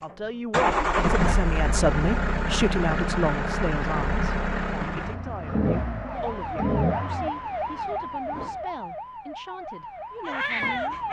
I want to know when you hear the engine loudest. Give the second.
1 s.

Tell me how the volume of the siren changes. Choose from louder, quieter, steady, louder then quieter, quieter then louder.
quieter then louder.